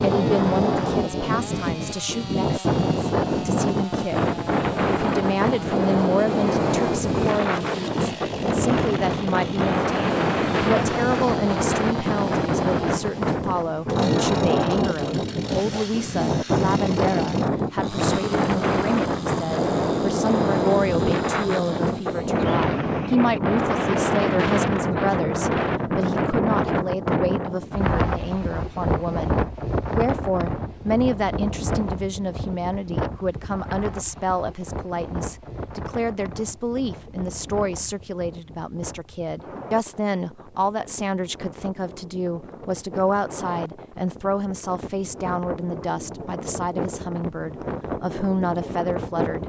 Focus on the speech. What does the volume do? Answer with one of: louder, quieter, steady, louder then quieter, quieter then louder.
steady.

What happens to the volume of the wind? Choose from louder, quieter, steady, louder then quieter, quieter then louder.
quieter.